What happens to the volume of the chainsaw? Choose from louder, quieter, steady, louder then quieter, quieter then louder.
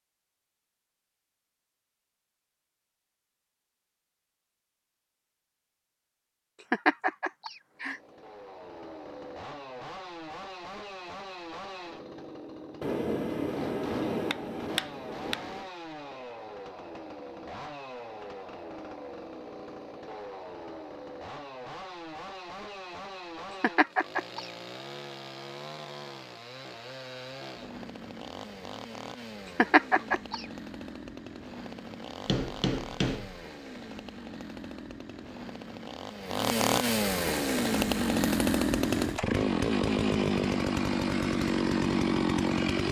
louder.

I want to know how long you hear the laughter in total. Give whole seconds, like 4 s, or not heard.
3 s.